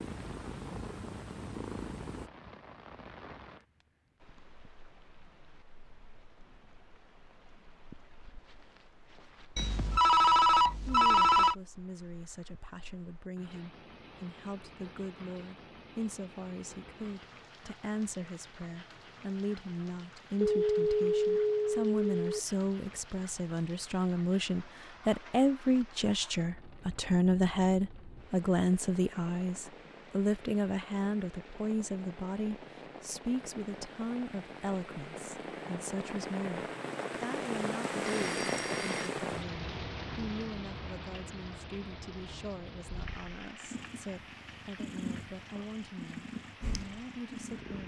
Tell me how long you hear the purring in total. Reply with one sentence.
The purring can be heard for 7 seconds in total.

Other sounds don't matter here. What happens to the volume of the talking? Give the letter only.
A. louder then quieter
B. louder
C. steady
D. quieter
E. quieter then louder
A.